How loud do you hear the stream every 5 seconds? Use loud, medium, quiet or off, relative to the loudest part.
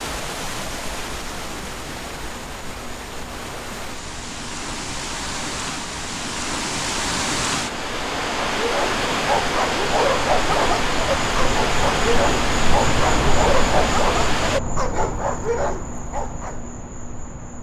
medium, loud, loud, off.